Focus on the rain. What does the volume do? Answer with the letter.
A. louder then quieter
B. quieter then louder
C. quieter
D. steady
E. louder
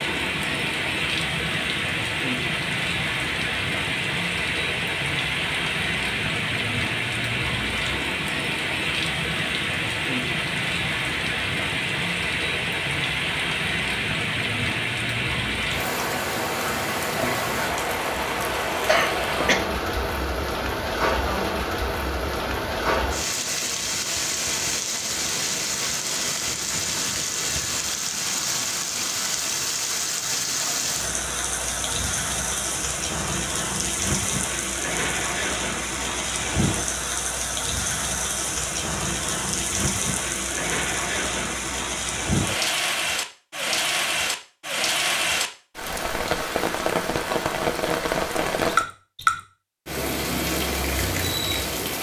D.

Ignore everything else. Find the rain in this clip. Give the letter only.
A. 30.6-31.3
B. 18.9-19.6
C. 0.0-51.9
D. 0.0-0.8
C.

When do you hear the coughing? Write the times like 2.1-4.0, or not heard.
18.9-19.6.